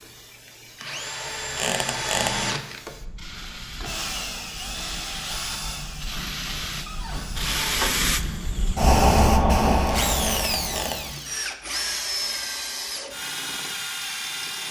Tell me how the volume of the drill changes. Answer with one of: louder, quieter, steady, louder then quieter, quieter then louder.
quieter then louder.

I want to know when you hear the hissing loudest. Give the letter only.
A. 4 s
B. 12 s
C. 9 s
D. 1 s
C.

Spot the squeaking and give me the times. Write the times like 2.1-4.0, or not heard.
1.6-2.4, 6.8-8.0, 10.2-11.1.